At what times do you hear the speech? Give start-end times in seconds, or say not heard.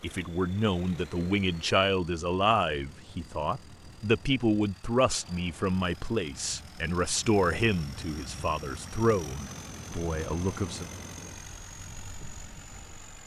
0.0-10.8.